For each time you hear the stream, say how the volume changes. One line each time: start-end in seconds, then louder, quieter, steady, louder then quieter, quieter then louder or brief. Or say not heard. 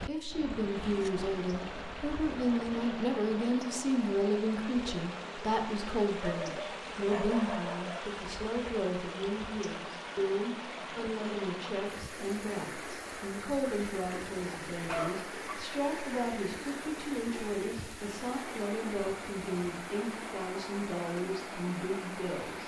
0.0-22.6 steady.